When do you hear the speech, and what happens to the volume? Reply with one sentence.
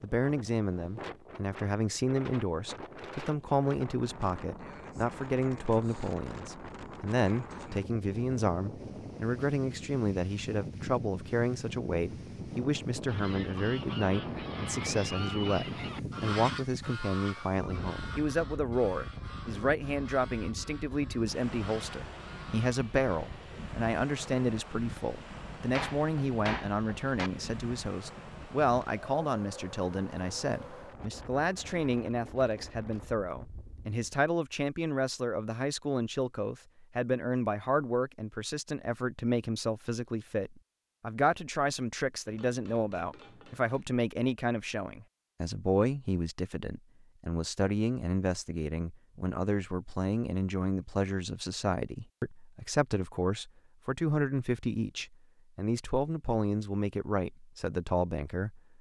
You can hear the speech from 0.0 to 58.6 s, at a steady volume.